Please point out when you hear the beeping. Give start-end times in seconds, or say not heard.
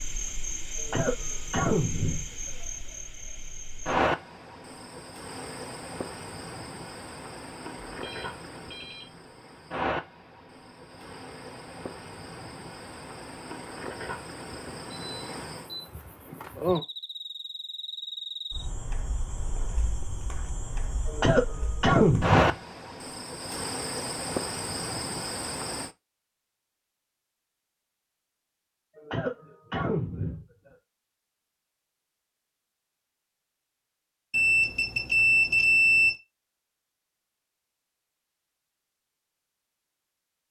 7.9-9.1, 15.1-15.8, 34.3-36.1.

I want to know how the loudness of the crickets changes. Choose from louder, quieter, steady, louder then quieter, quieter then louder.
quieter then louder.